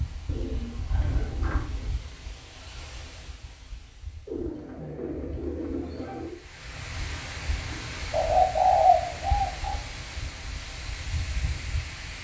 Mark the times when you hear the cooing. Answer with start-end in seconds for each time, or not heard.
0.2-1.9, 4.2-6.3, 8.1-9.8.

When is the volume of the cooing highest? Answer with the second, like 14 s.
9 s.